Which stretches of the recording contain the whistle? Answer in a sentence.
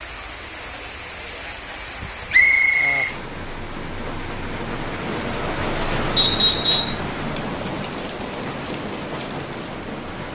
You can hear the whistle from 2.3 to 3.1 s and from 6.2 to 7.0 s.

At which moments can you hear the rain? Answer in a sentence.
The rain can be heard from 0.0 to 10.2 s.